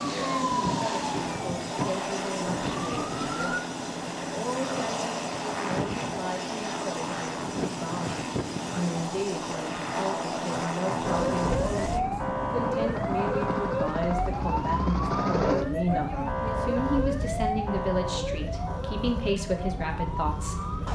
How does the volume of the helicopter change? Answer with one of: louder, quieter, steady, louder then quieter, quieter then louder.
quieter.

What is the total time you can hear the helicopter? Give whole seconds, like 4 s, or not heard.
21 s.